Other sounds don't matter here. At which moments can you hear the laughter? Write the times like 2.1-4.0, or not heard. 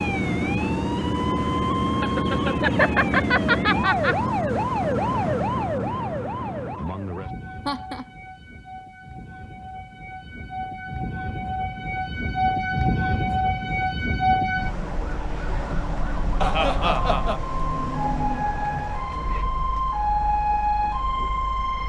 2.0-4.2, 7.7-8.1, 16.4-17.4.